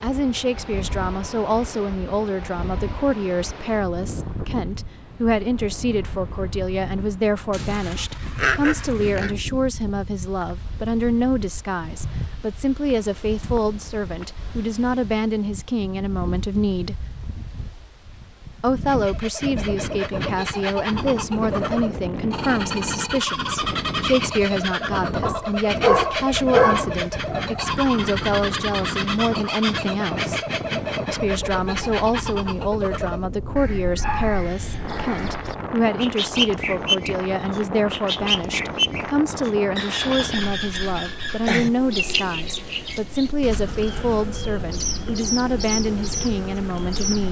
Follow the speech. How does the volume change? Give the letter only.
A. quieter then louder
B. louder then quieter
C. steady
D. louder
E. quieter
C.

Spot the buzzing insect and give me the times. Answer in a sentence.
You can't hear the buzzing insect here.